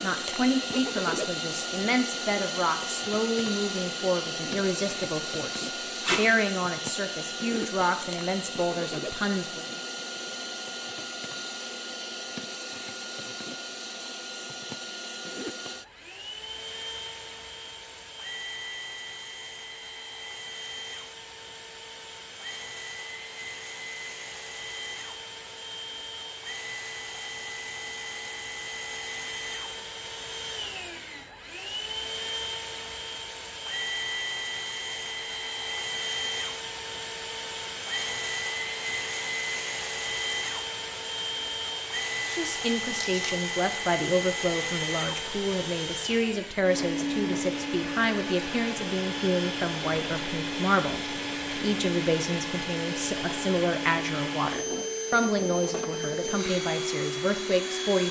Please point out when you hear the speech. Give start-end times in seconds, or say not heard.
0.0-9.7, 42.2-58.0.